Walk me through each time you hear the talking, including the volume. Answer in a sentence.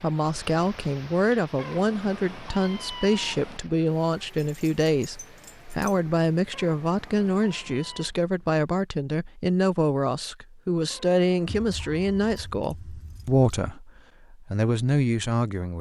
You can hear the talking from 0.0 to 15.7 s, at a steady volume.